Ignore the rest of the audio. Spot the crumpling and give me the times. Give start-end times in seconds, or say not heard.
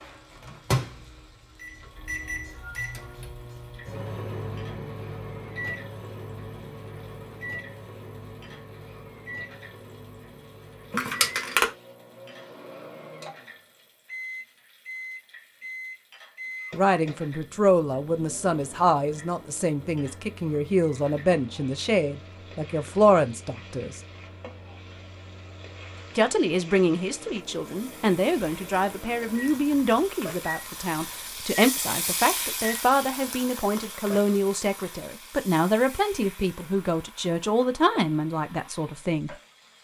10.9-11.7.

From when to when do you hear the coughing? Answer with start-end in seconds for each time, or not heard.
not heard.